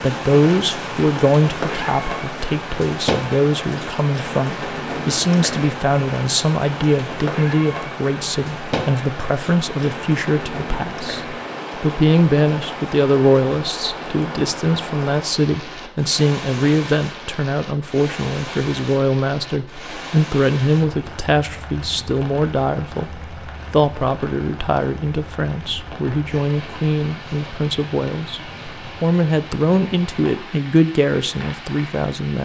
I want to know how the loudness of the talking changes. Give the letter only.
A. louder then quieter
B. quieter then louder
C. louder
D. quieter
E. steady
E.